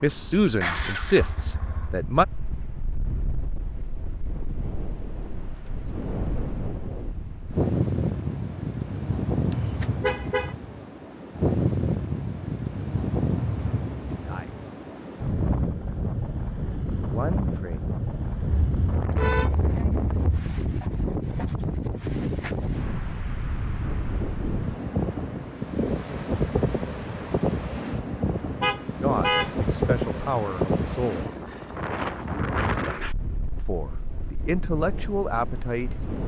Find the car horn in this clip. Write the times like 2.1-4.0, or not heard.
9.5-10.6, 18.4-20.4, 28.6-29.6.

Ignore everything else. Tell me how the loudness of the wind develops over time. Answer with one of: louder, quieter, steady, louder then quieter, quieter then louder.
steady.